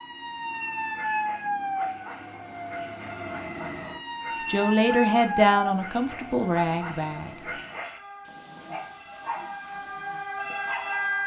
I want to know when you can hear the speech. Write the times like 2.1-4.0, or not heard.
4.5-7.3.